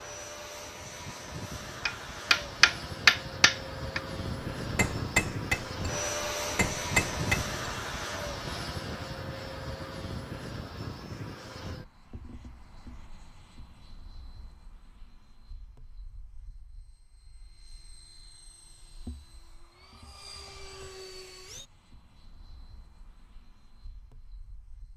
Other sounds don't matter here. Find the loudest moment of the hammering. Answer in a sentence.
The volume of the hammering peaks at 3 seconds.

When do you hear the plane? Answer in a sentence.
You can hear the plane from 0.0 to 24.9 s.